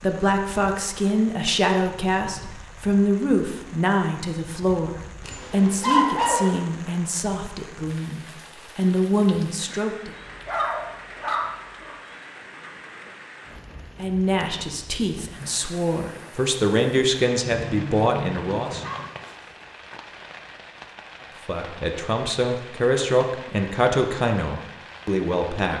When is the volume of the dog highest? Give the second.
6 s.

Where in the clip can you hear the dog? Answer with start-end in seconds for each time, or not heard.
5.2-6.7, 10.1-11.9, 17.4-19.1.